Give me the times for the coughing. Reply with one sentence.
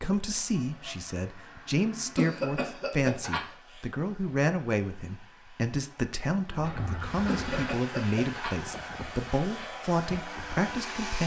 The coughing can be heard from 2.1 to 3.8 s and from 7.2 to 8.6 s.